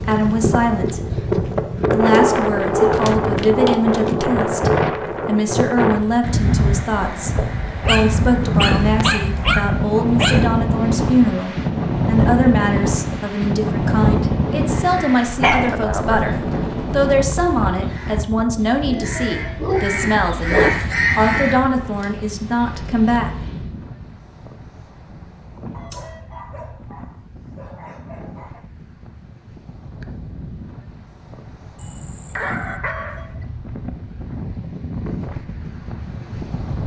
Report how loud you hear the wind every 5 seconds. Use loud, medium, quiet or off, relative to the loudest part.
loud, loud, loud, medium, quiet, quiet, quiet, medium.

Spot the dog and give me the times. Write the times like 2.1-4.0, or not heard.
2.1-4.3, 7.8-10.6, 15.4-15.8, 18.9-20.8, 25.8-28.6, 31.8-33.4.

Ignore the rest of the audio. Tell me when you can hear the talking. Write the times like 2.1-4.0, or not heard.
0.0-23.3.